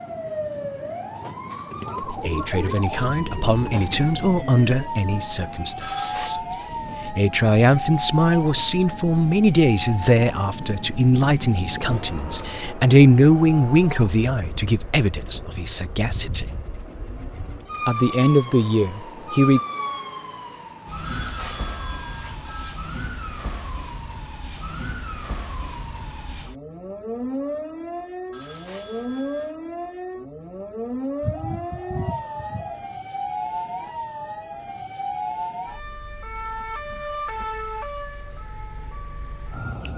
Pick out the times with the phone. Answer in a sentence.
You can hear the phone from 5.8 to 6.4 s, from 21.0 to 22.8 s and from 28.3 to 29.6 s.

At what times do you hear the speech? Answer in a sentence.
The speech can be heard from 2.0 to 16.5 s and from 17.9 to 19.6 s.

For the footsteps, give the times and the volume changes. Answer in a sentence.
The footsteps can't be heard in this clip.